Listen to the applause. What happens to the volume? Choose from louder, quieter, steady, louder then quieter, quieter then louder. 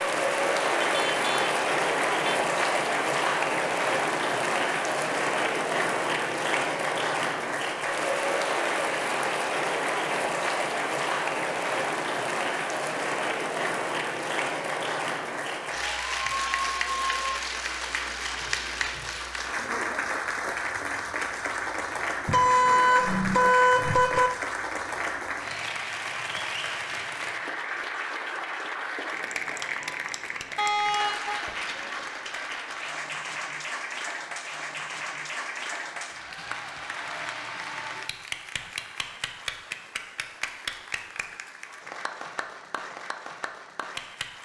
quieter.